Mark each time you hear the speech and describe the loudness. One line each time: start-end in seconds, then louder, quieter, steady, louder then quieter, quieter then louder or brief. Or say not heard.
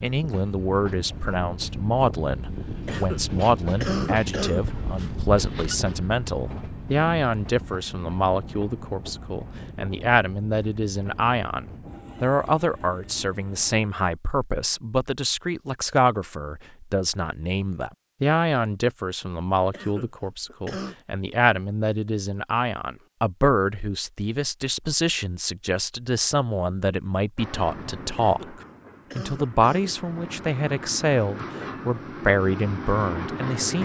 0.0-33.7 steady.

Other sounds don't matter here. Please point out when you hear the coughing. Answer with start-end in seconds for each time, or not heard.
2.9-4.7, 19.7-20.9, 28.1-30.0.